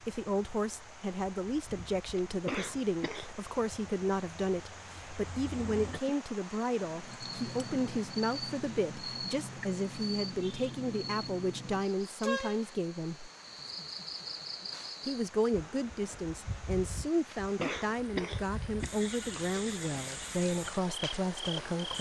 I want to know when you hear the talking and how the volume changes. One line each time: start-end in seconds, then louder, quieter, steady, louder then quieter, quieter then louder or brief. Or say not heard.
0.0-13.3 steady
15.1-21.9 steady.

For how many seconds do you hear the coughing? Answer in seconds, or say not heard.
3 s.